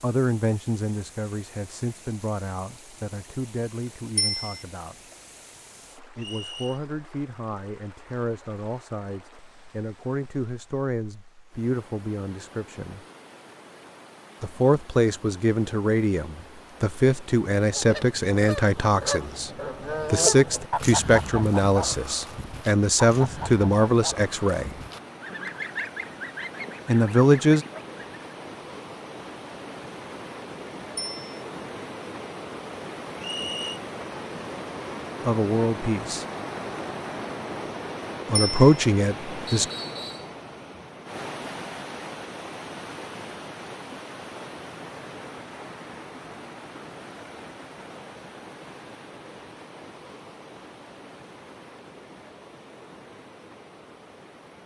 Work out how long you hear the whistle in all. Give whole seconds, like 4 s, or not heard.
2 s.